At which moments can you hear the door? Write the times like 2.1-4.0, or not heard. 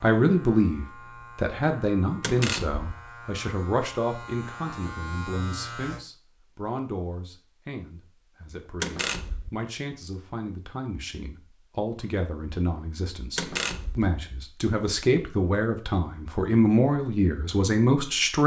2.2-2.9, 8.8-9.5, 13.3-14.1.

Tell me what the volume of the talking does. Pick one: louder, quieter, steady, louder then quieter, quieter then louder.
quieter then louder.